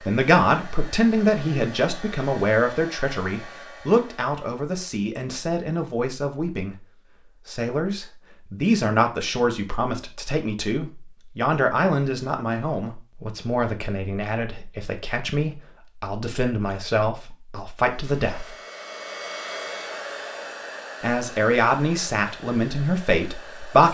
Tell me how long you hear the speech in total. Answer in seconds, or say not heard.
21 s.